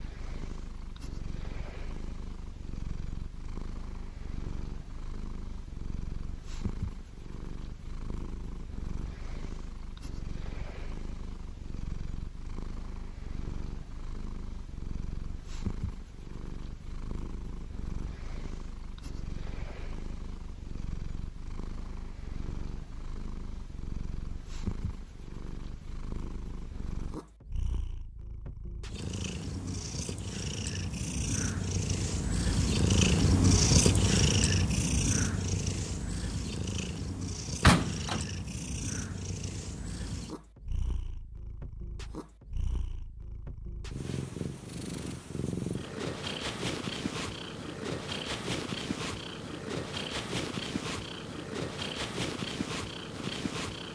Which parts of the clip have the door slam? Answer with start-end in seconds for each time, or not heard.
37.6-38.3.